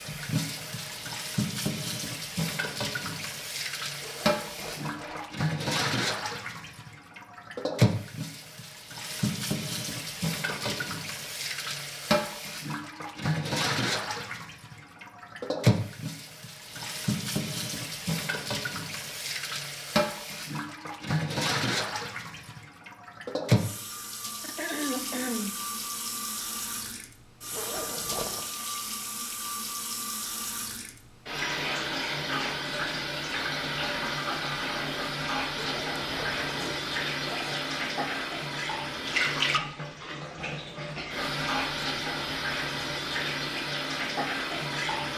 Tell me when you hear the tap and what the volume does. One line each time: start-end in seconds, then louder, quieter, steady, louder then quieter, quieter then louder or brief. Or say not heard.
0.0-45.1 steady.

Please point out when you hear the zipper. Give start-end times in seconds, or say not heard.
4.0-5.2, 27.5-28.4, 35.5-36.5.